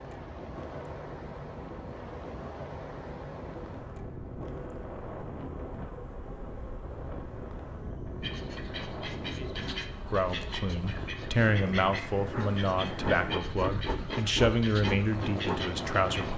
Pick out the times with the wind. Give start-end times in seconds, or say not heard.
0.0-16.3.